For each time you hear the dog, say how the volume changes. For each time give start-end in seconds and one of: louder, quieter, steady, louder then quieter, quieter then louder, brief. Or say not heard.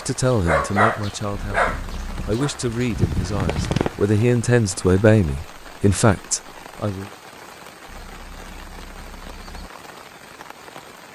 0.0-4.0 quieter then louder.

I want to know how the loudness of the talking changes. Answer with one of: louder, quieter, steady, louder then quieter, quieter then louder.
louder.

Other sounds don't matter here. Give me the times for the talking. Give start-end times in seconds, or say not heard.
0.1-7.1.